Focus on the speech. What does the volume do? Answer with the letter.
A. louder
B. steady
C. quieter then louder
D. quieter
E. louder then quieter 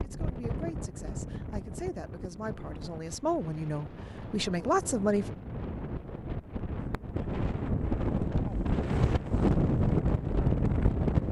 A.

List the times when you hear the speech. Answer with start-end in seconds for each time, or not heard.
0.0-5.3.